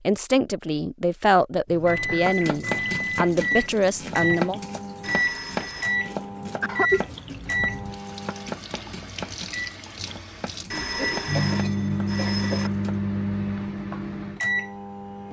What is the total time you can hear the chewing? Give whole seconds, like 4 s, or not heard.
not heard.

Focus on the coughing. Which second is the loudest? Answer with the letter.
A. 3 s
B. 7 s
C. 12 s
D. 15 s
B.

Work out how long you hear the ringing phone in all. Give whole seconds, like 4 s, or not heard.
3 s.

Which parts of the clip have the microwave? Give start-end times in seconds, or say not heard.
1.6-15.2.